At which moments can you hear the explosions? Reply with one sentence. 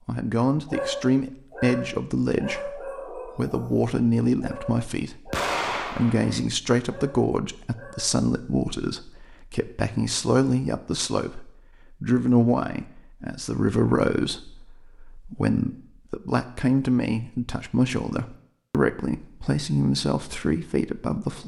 The explosions can be heard from 5.3 to 6.4 s.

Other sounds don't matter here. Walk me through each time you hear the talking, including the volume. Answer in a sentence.
The talking can be heard from 0.1 to 21.4 s, at a steady volume.